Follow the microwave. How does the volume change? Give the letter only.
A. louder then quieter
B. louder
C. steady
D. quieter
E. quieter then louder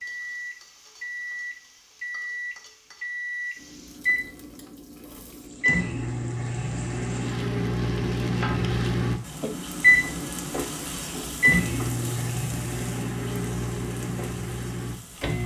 A.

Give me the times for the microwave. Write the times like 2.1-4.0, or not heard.
0.0-15.4.